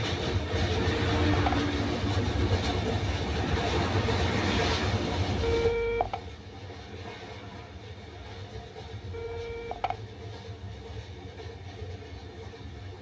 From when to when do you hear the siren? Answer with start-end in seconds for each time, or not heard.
not heard.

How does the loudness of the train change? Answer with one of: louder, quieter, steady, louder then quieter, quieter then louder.
quieter.